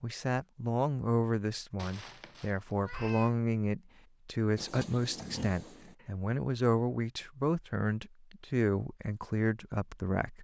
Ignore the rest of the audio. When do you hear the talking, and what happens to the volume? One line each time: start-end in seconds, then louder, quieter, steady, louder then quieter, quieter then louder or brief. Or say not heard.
0.0-10.4 steady.